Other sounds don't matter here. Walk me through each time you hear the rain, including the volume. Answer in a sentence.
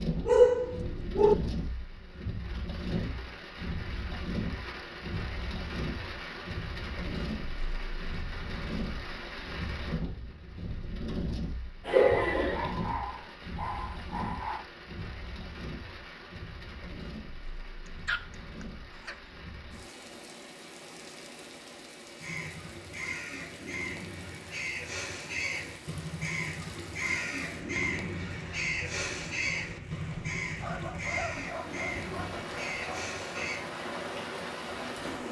The rain can be heard from 0.0 to 35.2 s, getting quieter then louder.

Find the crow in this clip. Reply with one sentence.
You can hear the crow from 22.2 to 33.6 s.